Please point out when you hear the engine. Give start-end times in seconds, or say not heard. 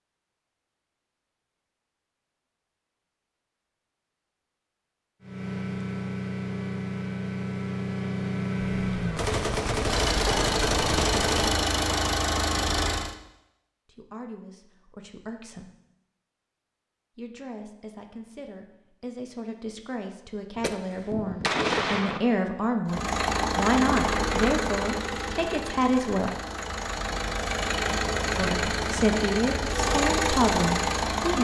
5.2-13.2, 22.9-31.3.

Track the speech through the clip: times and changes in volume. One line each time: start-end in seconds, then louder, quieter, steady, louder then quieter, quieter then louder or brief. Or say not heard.
13.8-15.7 brief
17.1-26.4 louder
28.4-31.3 brief.